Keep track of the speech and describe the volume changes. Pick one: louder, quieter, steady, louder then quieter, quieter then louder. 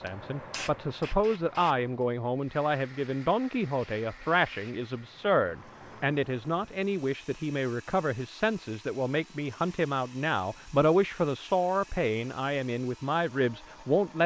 steady.